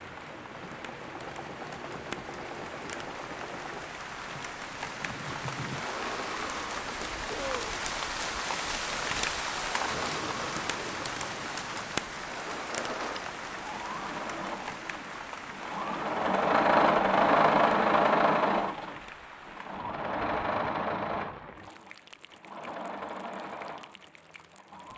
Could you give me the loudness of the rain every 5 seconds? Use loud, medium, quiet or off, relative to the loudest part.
medium, loud, loud, medium, quiet.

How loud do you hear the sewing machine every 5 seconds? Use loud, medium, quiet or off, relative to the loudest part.
quiet, quiet, quiet, loud, medium.